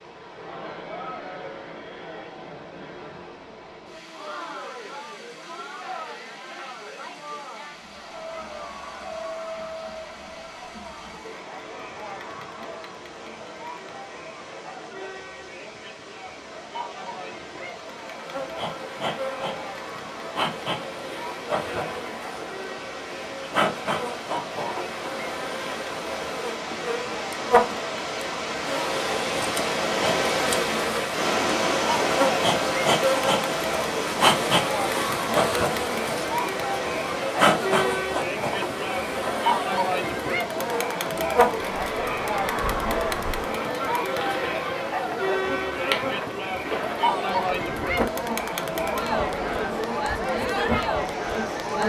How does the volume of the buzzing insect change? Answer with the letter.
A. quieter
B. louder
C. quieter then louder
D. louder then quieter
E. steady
D.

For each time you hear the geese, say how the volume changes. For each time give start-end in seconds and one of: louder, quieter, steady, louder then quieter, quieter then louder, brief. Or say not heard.
not heard.